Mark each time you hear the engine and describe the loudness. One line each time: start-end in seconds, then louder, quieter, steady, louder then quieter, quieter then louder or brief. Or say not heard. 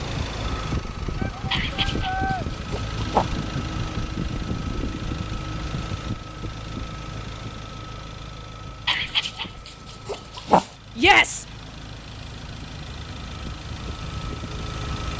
0.0-15.1 quieter then louder.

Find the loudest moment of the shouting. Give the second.
11 s.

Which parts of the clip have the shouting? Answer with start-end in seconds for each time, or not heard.
1.1-2.5, 10.9-11.4.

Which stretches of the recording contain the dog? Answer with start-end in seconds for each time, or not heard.
1.5-3.2, 8.8-10.8.